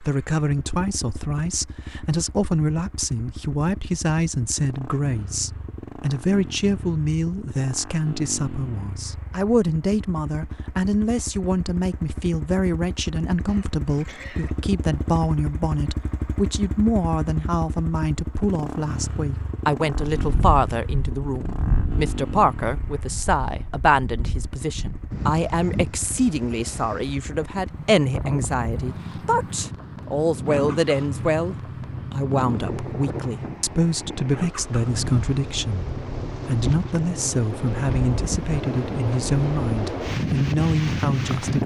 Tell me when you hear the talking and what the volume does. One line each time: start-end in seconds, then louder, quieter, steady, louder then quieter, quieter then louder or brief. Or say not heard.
0.0-41.6 steady.